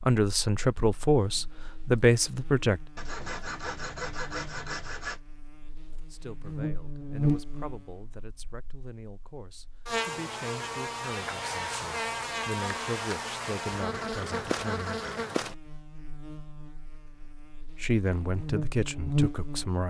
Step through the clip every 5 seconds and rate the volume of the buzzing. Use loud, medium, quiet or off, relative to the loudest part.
quiet, loud, loud, loud.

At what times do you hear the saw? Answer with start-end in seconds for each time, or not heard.
3.0-5.2, 13.8-15.3.